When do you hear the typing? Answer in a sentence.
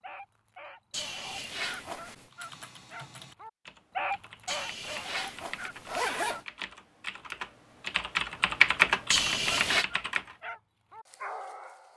You can hear the typing from 2.3 to 10.3 s.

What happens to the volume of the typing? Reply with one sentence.
The loudness of the typing goes up.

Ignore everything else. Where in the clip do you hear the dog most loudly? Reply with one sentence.
The volume of the dog peaks at 4 seconds.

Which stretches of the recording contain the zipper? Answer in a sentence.
The zipper can be heard from 0.9 to 2.3 s, from 4.5 to 6.5 s and from 9.1 to 9.8 s.